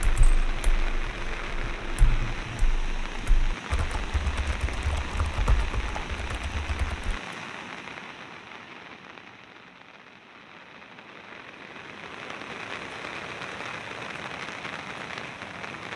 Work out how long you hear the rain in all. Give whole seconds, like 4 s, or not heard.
16 s.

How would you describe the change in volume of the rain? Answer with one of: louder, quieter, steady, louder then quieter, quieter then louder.
quieter then louder.